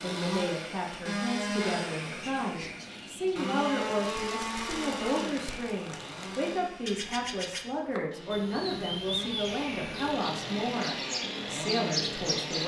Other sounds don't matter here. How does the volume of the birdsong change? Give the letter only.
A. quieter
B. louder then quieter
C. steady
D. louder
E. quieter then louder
D.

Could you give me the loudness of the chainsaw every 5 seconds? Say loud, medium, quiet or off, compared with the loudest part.
loud, medium, loud.